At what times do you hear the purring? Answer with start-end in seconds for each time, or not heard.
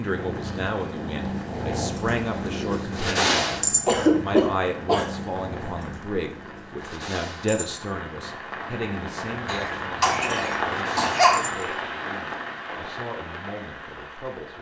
0.0-11.8.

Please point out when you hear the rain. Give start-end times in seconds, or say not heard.
0.0-14.5.